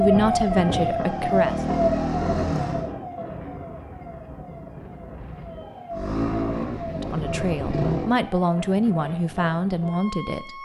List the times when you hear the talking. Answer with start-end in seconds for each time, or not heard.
0.0-1.6, 6.9-10.5.